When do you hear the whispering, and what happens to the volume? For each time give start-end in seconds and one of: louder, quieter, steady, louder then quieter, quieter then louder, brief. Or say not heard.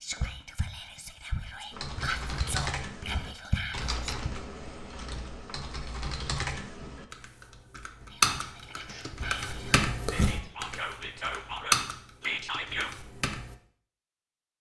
0.0-4.3 louder
8.1-12.9 louder.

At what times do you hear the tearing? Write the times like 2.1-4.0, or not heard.
8.7-9.1.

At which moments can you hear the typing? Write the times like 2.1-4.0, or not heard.
1.7-13.6.